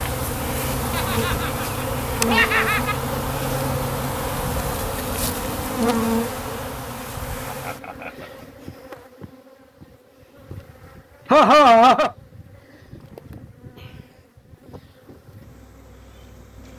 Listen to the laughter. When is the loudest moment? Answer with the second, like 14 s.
12 s.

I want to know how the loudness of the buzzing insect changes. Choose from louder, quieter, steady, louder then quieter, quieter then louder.
quieter.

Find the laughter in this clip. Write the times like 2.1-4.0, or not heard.
0.9-3.0, 7.5-8.4, 11.3-12.1.